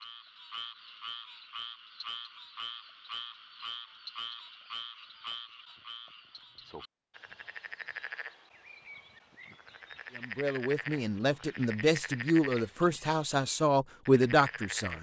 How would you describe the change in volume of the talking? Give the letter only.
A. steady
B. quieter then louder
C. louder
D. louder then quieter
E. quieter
C.